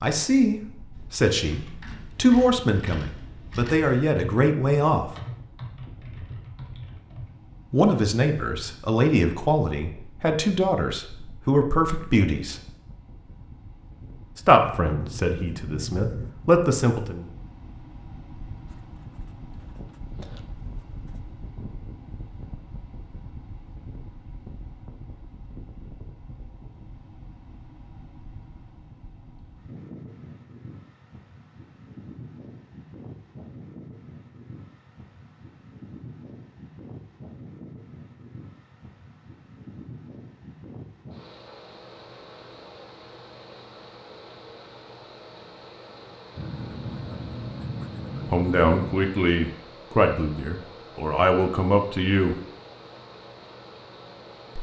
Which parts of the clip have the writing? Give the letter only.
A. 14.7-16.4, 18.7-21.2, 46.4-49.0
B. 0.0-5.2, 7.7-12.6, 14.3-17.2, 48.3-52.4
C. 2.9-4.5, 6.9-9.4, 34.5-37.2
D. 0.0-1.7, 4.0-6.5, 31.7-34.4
A.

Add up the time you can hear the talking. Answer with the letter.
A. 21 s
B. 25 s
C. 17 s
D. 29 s
C.